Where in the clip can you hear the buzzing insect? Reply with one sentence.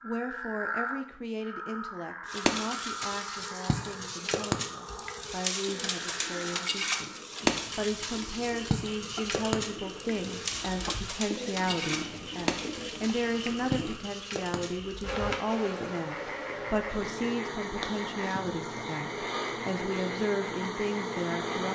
You can hear the buzzing insect from 2.2 to 21.6 s.